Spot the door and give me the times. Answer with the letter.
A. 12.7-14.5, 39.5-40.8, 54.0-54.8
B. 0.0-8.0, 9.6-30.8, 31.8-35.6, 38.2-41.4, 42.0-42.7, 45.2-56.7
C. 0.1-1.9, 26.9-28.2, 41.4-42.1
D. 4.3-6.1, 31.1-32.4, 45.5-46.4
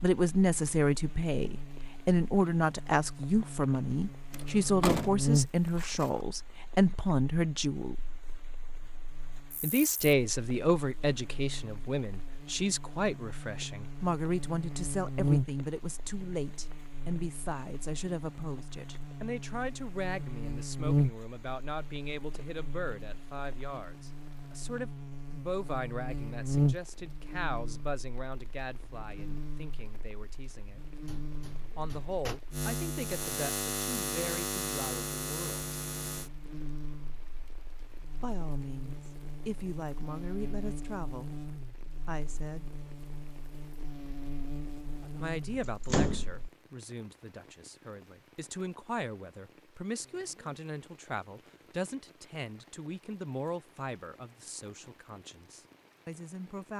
D.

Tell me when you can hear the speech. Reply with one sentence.
The speech can be heard from 0.0 to 8.0 s, from 9.6 to 30.8 s, from 31.8 to 35.6 s, from 38.2 to 41.4 s, from 42.0 to 42.7 s and from 45.2 to 56.7 s.